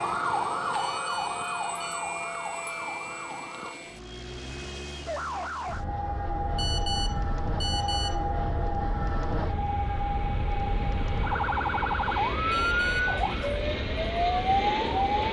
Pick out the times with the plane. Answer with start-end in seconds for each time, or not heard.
0.0-15.2.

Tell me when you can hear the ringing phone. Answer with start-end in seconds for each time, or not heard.
0.8-2.0, 6.5-8.2, 12.5-13.2.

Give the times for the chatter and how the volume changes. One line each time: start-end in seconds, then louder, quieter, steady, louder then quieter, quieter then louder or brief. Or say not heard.
not heard.